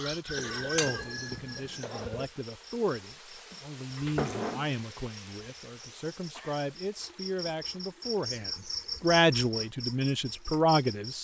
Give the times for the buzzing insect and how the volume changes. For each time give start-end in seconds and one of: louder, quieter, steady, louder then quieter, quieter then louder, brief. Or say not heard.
0.0-11.2 quieter then louder.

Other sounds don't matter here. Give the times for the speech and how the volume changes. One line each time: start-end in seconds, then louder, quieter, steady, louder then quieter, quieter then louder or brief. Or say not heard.
0.0-11.2 louder.